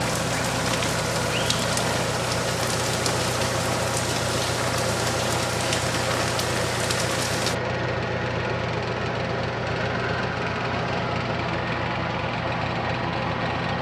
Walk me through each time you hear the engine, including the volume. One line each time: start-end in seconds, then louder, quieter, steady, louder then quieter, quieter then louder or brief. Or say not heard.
0.0-13.7 steady.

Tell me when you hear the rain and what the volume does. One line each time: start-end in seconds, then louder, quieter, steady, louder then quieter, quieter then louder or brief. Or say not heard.
0.0-7.5 steady.